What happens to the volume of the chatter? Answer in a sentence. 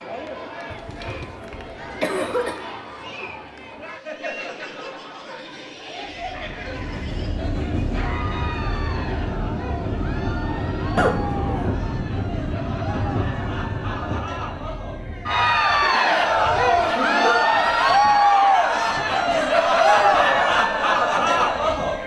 The volume of the chatter goes up.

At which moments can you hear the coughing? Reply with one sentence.
You can hear the coughing from 0.7 to 2.5 s, from 10.9 to 11.7 s and from 15.3 to 17.3 s.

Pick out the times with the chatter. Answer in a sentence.
The chatter can be heard from 0.0 to 22.0 s.